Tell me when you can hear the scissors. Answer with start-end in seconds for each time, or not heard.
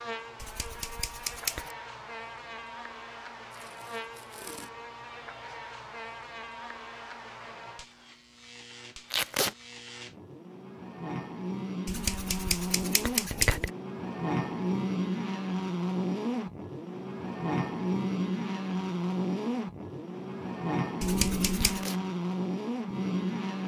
0.4-1.8, 11.8-13.7, 21.0-21.9.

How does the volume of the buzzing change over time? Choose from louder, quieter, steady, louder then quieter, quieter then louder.
louder.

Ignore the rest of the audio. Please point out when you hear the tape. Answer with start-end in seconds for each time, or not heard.
3.5-4.7, 9.1-9.6, 21.6-22.0.